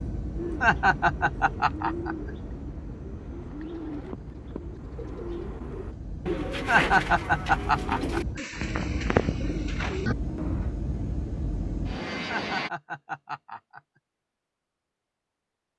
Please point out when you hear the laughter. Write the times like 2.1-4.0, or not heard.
0.6-2.3, 6.7-8.4, 12.2-13.8.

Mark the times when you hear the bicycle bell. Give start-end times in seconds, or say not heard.
not heard.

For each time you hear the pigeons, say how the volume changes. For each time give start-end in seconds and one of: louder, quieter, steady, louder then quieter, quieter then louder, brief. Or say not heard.
0.3-10.8 louder.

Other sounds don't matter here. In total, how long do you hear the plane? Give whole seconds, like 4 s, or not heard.
13 s.